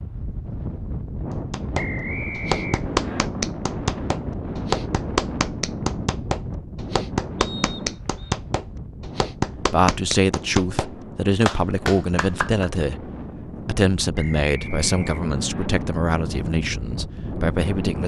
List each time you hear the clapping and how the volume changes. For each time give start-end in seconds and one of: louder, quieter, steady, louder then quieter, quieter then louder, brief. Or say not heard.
1.5-12.8 steady.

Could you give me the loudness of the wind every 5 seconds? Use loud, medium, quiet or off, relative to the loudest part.
loud, loud, medium, loud.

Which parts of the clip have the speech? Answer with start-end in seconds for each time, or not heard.
9.6-18.0.